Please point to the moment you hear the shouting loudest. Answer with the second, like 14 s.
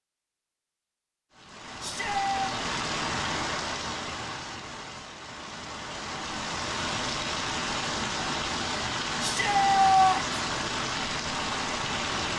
10 s.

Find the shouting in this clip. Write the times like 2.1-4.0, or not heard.
1.8-2.5, 9.2-10.3.